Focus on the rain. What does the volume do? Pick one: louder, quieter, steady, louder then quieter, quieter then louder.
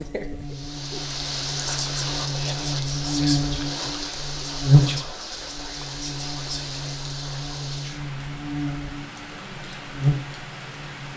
quieter.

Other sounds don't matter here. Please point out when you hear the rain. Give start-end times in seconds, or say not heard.
0.0-11.1.